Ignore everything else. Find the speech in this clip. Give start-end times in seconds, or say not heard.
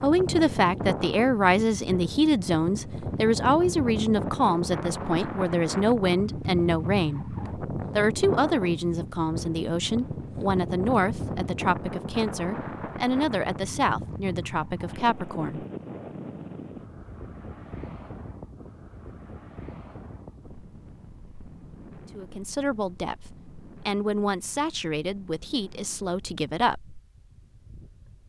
0.0-15.7, 22.1-26.9.